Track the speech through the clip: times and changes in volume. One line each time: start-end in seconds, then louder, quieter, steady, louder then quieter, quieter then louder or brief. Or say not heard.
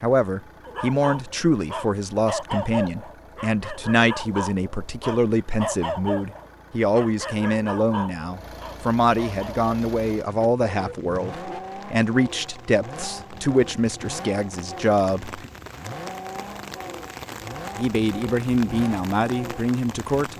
0.0-15.5 steady
17.8-20.3 brief.